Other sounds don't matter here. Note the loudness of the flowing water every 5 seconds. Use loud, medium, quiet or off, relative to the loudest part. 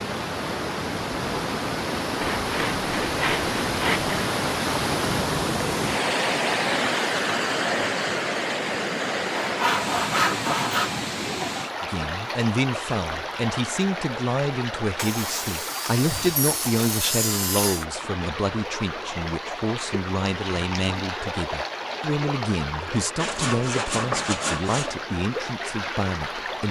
loud, loud, medium, medium, medium, medium.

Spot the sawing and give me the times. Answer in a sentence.
You can hear the sawing from 2.2 to 4.2 s, from 9.3 to 10.9 s, from 14.9 to 17.9 s and from 23.1 to 24.9 s.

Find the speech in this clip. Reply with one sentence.
You can hear the speech from 11.8 to 26.6 s.